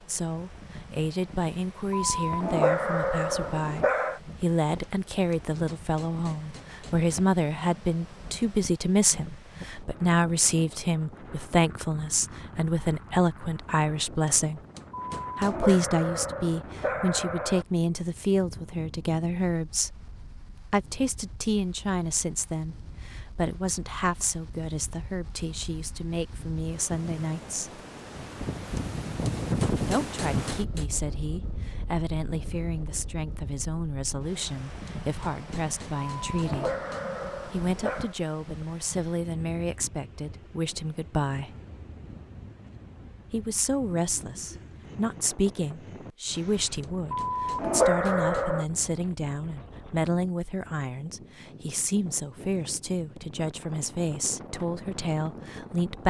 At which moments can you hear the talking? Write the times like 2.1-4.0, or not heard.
0.1-14.6, 15.3-27.8, 29.9-36.8, 37.5-41.5, 43.3-56.0.